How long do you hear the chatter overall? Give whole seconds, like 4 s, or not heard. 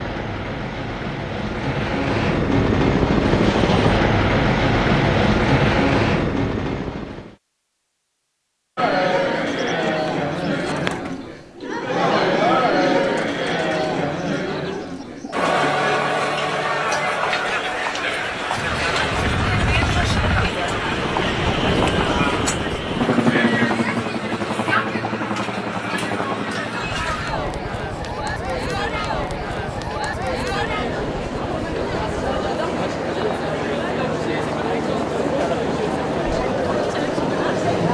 29 s.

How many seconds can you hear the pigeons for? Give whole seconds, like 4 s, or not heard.
7 s.